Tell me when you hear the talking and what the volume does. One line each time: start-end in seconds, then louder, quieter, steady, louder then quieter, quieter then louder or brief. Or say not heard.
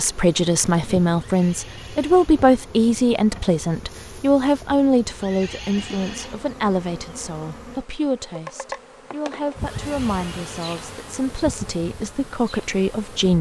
0.0-13.3 quieter.